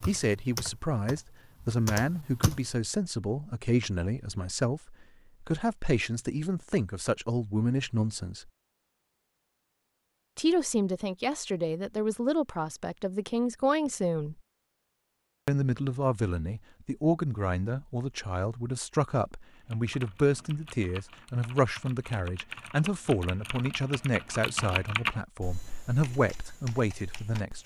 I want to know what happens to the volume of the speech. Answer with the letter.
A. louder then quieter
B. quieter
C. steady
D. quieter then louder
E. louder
C.